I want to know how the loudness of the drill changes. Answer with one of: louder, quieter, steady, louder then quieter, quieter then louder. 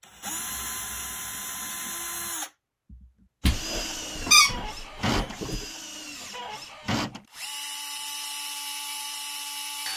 steady.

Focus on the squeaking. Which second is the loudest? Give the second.
4 s.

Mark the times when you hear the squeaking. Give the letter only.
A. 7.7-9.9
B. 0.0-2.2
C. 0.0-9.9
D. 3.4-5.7
D.